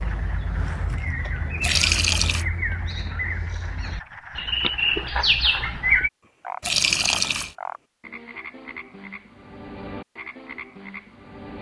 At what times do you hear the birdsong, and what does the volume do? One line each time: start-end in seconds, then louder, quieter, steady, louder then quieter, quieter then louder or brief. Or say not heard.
0.0-6.1 louder.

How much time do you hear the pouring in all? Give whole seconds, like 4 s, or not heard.
2 s.